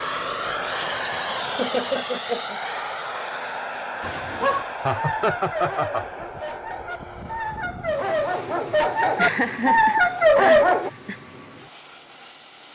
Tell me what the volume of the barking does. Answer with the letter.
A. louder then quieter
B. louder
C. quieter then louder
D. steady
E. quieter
C.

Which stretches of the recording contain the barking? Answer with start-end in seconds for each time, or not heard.
4.0-10.9.